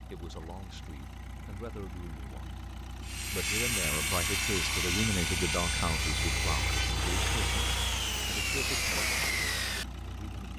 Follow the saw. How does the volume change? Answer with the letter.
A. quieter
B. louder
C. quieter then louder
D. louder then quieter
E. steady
E.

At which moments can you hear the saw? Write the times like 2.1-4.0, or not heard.
3.0-9.8.